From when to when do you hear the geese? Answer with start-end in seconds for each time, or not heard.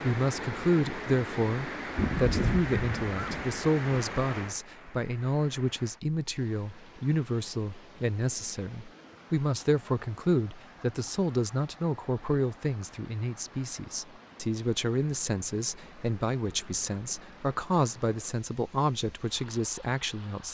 1.9-3.5.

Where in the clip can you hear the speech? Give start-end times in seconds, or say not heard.
0.0-20.4.